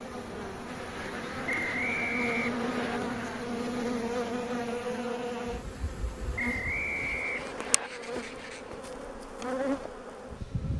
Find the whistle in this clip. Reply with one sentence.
You can hear the whistle from 1.4 to 3.0 s and from 6.3 to 7.9 s.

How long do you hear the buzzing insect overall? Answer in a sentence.
The buzzing insect can be heard for 11 seconds in total.